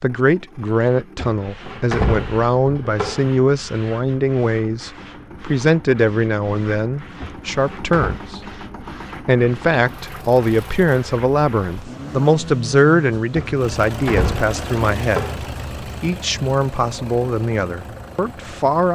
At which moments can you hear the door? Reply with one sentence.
The door can be heard from 1.1 to 3.3 s, from 7.2 to 8.2 s and from 13.3 to 15.4 s.